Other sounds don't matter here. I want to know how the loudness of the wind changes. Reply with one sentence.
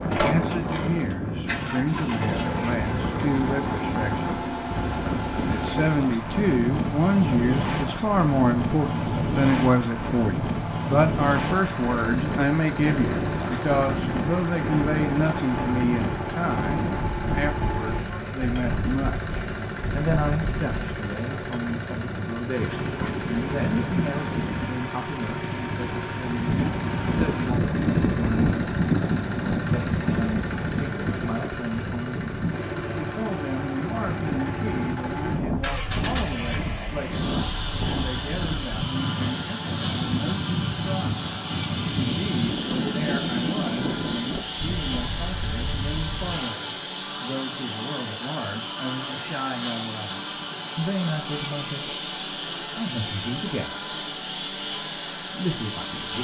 The volume of the wind stays about the same.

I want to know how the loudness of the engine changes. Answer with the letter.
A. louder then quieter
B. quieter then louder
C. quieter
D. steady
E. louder
D.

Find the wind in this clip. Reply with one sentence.
You can hear the wind from 0.0 to 46.5 s.